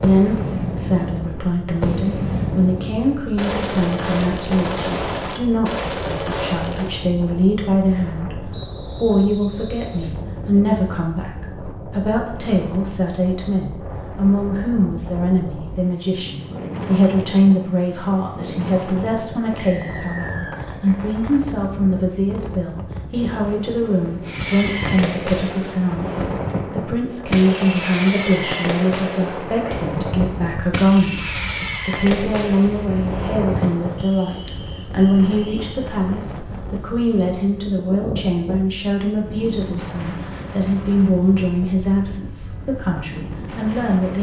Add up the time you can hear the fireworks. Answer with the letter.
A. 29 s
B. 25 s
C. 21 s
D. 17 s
D.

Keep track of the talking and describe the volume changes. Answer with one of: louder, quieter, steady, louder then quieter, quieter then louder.
steady.